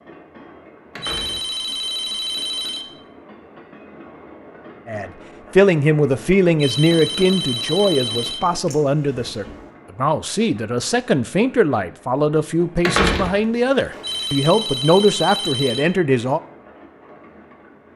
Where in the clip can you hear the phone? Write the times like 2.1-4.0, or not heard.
1.0-2.9, 6.5-8.4, 14.0-15.9.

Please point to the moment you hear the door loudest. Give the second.
13 s.